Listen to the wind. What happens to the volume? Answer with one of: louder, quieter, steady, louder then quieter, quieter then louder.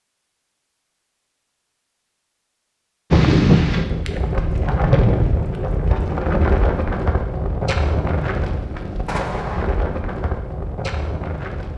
quieter.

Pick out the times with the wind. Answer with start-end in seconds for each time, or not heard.
3.1-11.7.